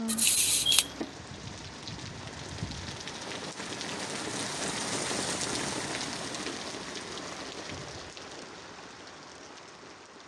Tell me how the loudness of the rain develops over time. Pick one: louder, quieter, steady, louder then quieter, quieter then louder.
louder then quieter.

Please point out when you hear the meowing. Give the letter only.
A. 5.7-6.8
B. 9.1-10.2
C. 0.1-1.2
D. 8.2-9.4
C.